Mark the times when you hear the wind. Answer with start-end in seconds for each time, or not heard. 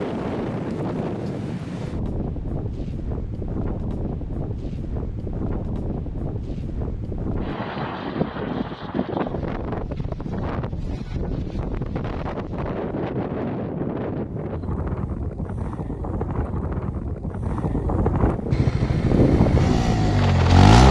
0.0-20.8.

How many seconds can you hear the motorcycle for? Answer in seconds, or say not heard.
2 s.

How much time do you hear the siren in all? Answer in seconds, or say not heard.
not heard.